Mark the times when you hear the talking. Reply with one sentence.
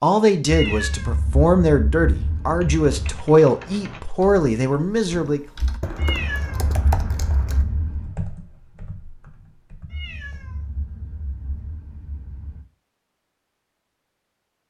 The talking can be heard from 0.0 to 5.4 s.